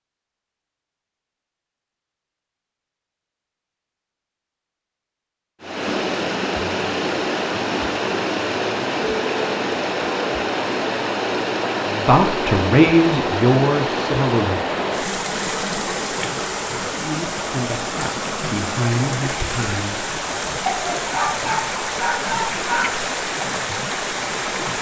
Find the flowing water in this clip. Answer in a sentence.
You can hear the flowing water from 5.6 to 24.7 s.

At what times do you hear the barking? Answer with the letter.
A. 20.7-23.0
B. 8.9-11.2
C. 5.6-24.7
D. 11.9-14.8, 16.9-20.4
A.